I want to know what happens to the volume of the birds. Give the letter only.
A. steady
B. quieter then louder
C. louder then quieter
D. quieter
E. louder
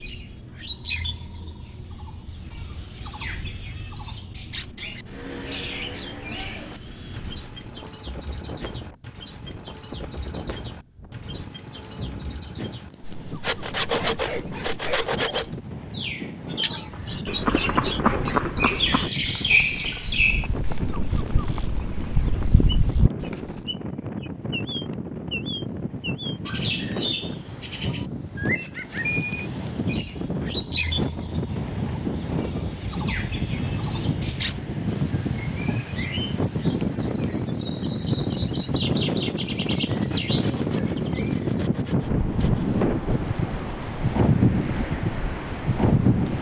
C.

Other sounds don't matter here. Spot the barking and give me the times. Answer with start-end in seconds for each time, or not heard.
13.9-15.2.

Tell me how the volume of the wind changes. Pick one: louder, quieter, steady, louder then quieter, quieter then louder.
louder.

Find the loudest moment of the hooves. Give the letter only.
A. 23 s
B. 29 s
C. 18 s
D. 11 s
C.